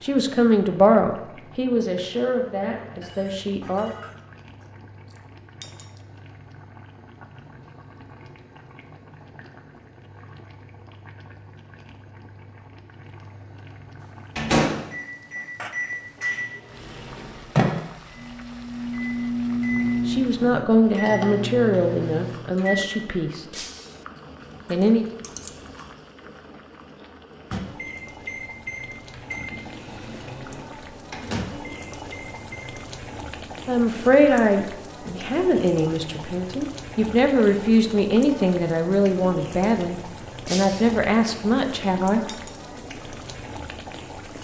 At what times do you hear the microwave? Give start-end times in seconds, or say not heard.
14.3-22.9, 27.5-32.6.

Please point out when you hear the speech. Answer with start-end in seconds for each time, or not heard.
0.0-3.9, 20.1-23.6, 24.7-25.1, 33.6-42.2.